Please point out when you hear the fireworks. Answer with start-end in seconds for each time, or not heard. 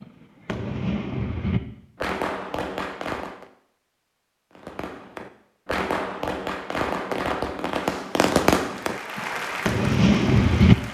0.0-3.5, 4.5-10.8.